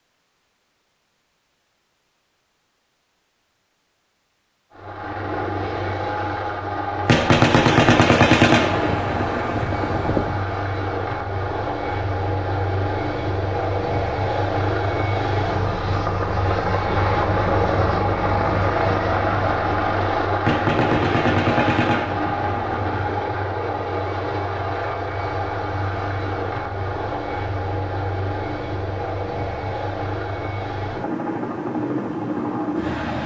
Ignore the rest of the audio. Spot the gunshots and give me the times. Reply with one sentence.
The gunshots can be heard from 7.0 to 10.4 s and from 20.4 to 23.1 s.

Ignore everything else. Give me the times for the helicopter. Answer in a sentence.
The helicopter can be heard from 4.7 to 33.2 s.